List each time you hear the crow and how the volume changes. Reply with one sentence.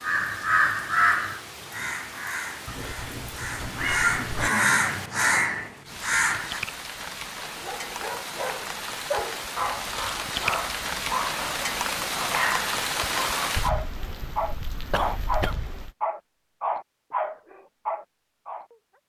The crow can be heard from 0.0 to 6.6 s, getting quieter then louder.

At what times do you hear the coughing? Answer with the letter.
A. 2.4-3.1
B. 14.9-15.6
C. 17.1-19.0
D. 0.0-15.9
B.